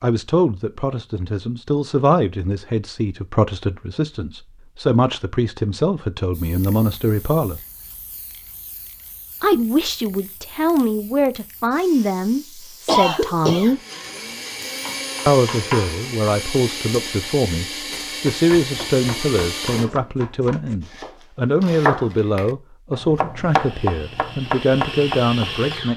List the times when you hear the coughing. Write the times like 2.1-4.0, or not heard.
12.8-13.8.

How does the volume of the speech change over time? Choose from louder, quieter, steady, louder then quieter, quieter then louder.
steady.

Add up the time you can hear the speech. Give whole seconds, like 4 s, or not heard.
23 s.